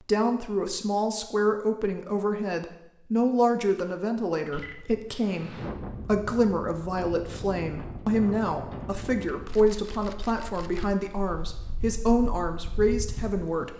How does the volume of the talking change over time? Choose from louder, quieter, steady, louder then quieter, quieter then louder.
steady.